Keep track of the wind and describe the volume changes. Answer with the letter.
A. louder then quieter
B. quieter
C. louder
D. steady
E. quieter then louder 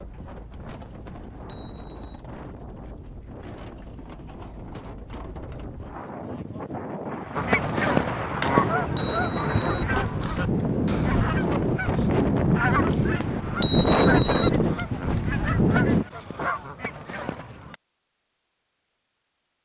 C.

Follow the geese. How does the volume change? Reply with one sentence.
The volume of the geese goes down.